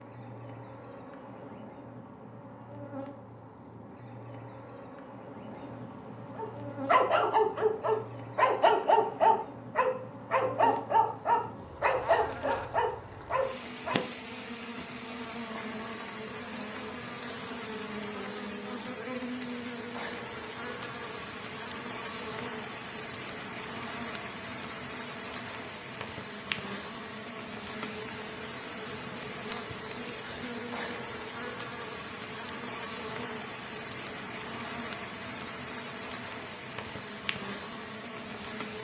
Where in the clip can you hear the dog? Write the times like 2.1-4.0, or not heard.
6.3-14.0.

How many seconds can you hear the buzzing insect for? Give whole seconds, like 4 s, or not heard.
39 s.